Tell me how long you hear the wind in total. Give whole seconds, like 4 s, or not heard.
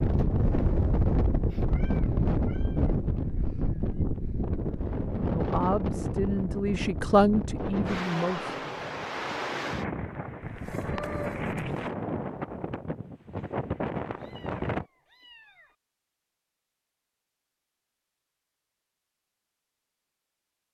15 s.